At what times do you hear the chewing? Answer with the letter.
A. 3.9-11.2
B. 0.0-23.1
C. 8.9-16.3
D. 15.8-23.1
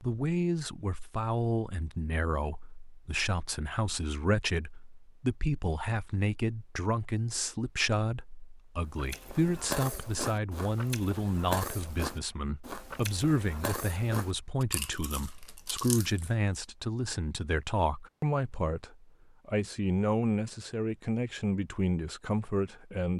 C.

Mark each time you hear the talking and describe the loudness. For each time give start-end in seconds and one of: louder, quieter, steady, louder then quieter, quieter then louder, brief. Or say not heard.
0.0-23.1 steady.